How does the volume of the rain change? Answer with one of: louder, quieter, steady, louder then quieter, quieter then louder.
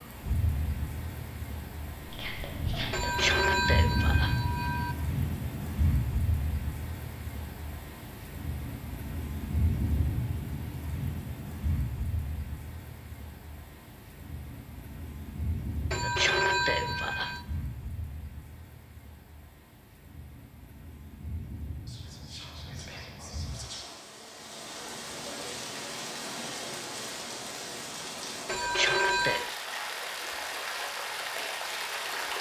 quieter then louder.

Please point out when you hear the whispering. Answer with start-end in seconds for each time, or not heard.
2.0-3.3, 21.9-24.1.